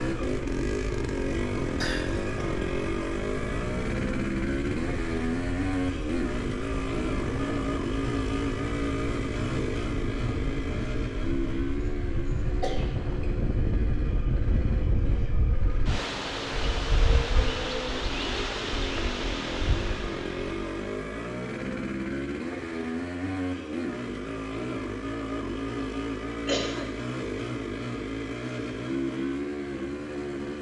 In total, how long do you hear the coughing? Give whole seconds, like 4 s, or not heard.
2 s.